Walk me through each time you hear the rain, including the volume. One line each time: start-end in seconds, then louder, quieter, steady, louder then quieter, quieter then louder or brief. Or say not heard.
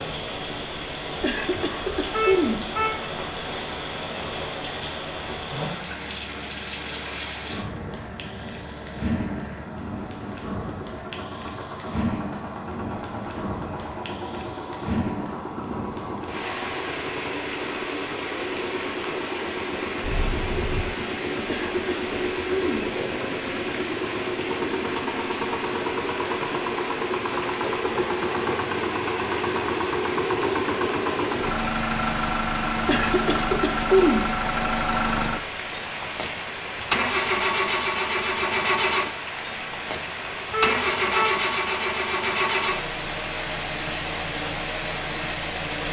0.0-45.8 steady.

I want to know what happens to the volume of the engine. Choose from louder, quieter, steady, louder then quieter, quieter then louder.
louder.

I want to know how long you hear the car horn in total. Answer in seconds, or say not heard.
3 s.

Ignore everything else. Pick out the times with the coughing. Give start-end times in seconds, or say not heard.
1.2-2.7, 21.4-22.9, 32.9-34.4.